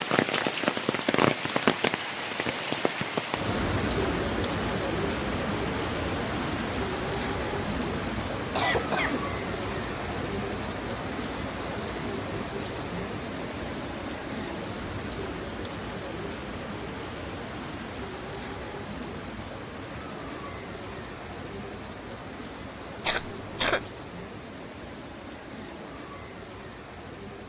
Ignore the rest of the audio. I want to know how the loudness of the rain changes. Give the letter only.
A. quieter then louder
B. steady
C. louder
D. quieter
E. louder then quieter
D.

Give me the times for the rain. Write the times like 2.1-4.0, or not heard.
0.0-27.4.